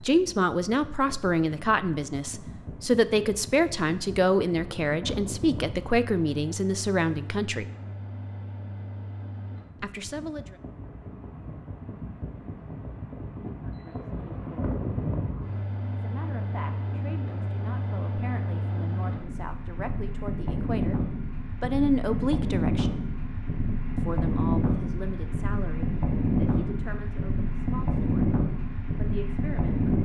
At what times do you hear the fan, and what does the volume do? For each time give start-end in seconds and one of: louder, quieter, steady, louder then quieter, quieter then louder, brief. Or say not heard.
0.0-30.0 louder.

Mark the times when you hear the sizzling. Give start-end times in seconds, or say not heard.
not heard.